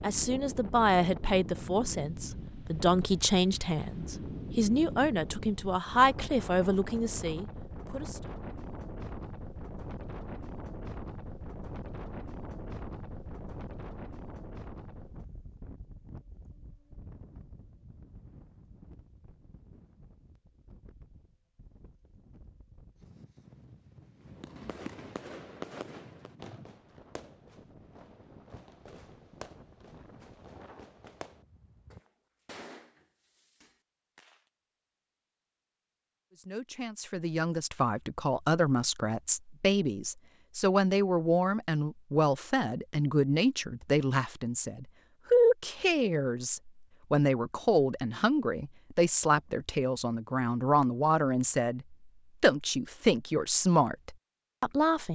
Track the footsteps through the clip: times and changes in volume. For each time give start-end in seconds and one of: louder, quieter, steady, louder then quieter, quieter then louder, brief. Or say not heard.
not heard.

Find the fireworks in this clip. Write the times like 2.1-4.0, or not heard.
24.2-34.4.